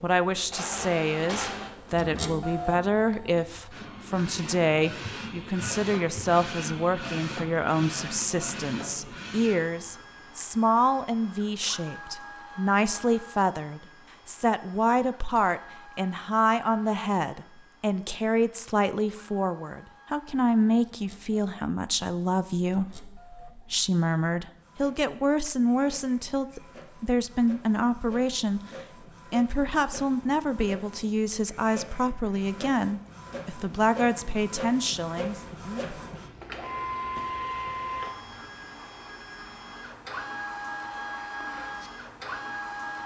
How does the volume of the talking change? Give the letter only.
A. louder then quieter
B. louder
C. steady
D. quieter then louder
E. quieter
C.